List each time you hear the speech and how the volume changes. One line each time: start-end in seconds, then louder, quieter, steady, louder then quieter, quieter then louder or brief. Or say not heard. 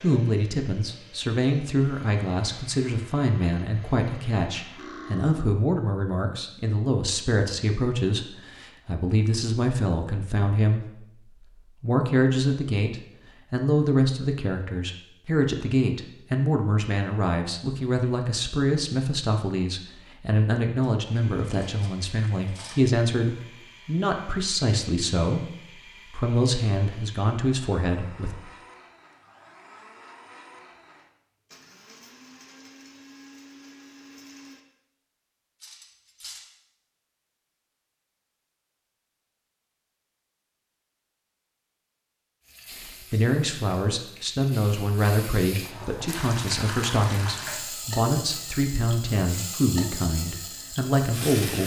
0.0-11.2 steady
11.8-28.4 steady
42.8-51.6 steady.